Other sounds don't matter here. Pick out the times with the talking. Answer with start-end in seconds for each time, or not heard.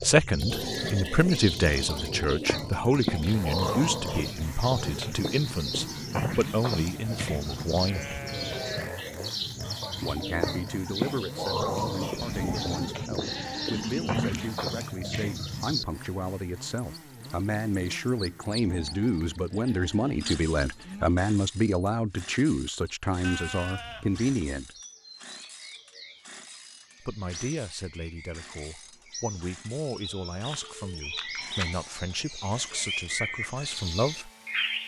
0.0-8.2, 10.0-24.7, 27.0-34.3.